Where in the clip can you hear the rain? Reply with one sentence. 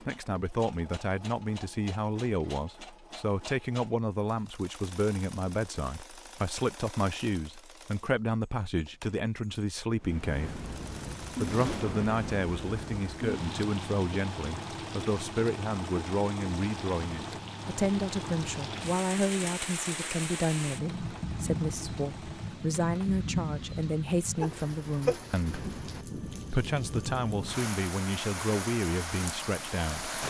The rain can be heard from 10.0 to 30.2 s.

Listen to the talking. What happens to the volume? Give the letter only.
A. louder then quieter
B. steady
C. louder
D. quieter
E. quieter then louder
B.